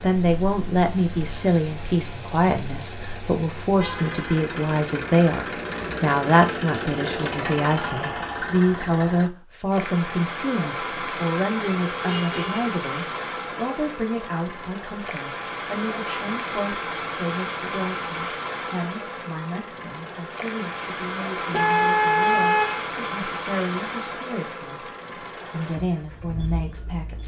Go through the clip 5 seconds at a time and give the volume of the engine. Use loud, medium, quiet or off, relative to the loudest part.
medium, loud, loud, loud, loud, medium.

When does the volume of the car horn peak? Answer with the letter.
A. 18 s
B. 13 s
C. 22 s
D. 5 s
C.